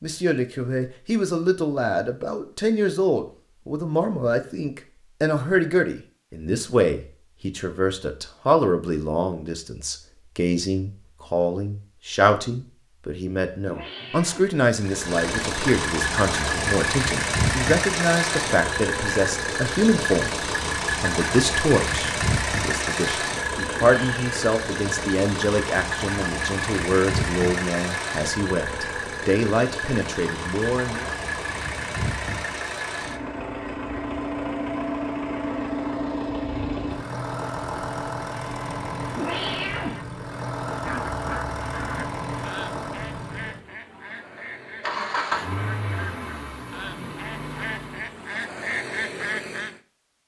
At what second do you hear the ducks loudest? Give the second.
49 s.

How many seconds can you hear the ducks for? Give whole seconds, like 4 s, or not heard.
9 s.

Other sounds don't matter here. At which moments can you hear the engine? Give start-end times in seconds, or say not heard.
14.8-48.2.